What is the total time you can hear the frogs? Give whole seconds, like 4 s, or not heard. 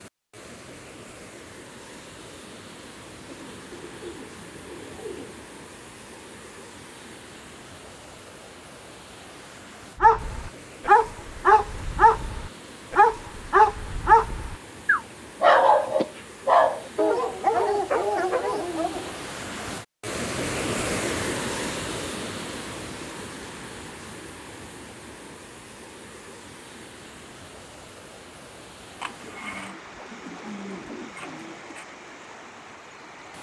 not heard.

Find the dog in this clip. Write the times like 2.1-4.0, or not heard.
10.0-19.1.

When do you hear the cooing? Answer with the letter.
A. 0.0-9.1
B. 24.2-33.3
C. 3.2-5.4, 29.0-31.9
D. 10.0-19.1
C.